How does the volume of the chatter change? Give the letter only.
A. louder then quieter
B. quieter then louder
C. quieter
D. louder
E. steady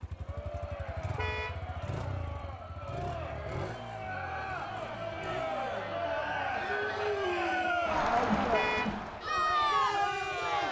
D.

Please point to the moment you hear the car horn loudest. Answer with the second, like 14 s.
9 s.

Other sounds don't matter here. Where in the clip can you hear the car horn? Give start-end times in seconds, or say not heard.
1.1-1.6, 8.5-9.0.